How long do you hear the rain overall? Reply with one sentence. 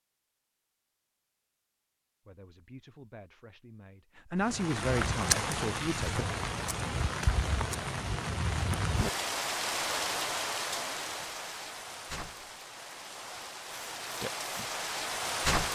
You can hear the rain for 11 seconds altogether.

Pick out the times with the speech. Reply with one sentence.
You can hear the speech from 2.2 to 6.2 s.